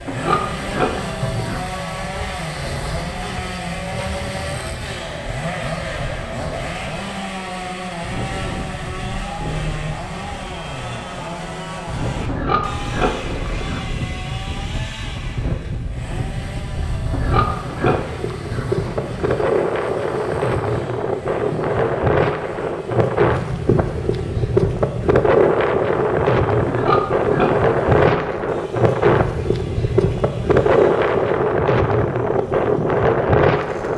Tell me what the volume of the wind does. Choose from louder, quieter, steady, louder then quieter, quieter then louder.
louder.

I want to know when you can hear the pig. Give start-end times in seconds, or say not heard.
0.1-1.6, 12.2-13.8, 17.1-19.4, 26.6-28.4.